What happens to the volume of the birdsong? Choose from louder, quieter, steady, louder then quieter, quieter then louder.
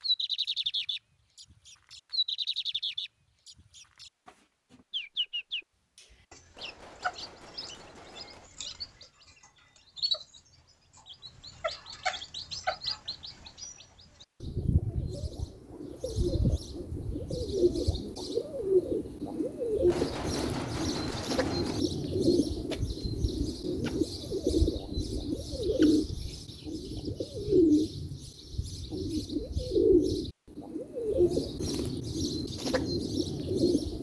louder.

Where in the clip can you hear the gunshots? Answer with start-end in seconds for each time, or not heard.
6.5-8.5, 19.9-21.8.